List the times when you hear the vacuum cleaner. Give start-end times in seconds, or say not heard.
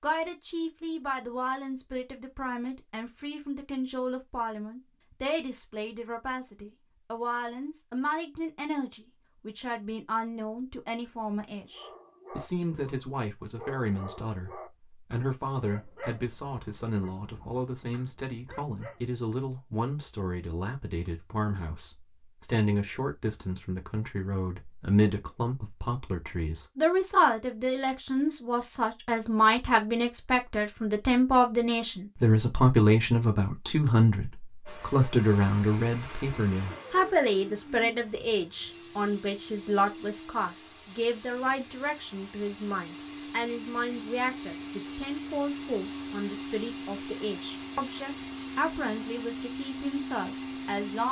34.6-51.0.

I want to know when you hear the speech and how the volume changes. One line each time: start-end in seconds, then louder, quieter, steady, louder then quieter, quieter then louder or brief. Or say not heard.
0.0-51.0 louder then quieter.